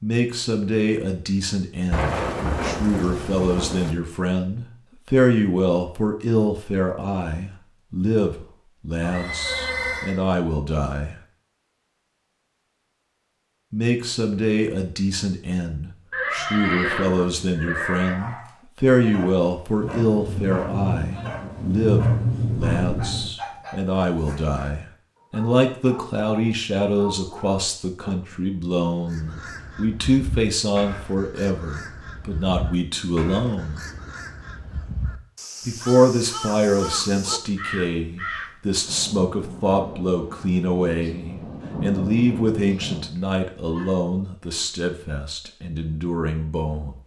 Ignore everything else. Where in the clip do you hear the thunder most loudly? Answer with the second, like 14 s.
22 s.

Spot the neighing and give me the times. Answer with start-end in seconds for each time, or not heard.
9.0-10.2, 16.1-18.1, 43.1-43.9.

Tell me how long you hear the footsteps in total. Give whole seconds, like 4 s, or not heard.
not heard.